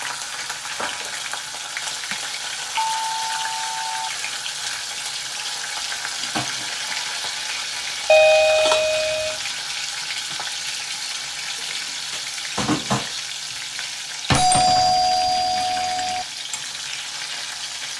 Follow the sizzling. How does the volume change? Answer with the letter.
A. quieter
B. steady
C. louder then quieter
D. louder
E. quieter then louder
B.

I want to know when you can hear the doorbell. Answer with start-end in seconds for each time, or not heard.
2.8-4.1, 8.1-9.3, 14.3-16.2.